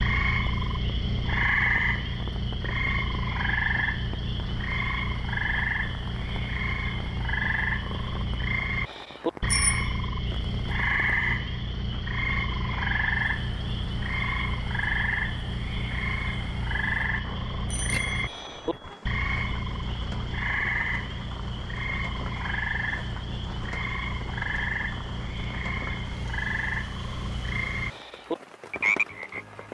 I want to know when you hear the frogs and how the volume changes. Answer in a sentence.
The frogs can be heard from 0.0 to 29.6 s, at a steady volume.